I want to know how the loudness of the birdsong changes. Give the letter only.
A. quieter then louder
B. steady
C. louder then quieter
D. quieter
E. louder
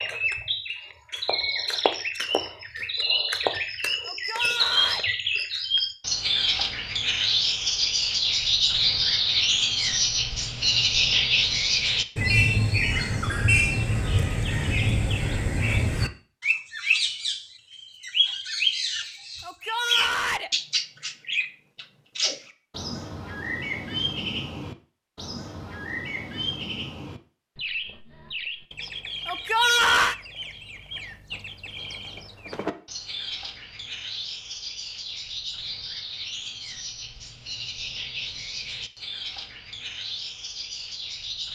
D.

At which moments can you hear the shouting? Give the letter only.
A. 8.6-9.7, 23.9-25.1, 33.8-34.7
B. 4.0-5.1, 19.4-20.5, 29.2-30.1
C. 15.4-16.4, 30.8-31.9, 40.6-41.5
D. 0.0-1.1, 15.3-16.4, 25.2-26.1
B.